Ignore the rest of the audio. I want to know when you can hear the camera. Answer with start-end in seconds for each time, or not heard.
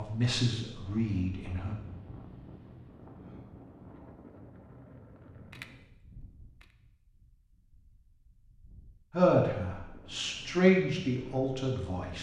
5.3-6.8.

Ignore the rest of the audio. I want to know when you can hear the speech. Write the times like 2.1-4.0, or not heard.
0.0-1.8, 9.1-12.1.